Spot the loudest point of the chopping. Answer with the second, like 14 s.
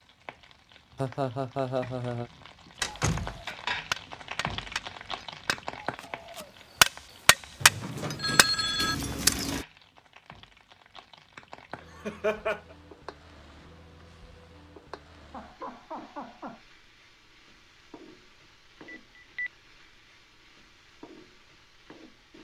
7 s.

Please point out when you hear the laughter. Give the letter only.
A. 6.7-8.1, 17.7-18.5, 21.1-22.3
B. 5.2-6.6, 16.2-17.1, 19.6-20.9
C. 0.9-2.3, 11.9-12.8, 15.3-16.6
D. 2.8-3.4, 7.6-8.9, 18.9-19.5
C.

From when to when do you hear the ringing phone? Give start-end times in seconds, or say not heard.
2.8-3.4, 7.6-8.9, 18.9-19.5.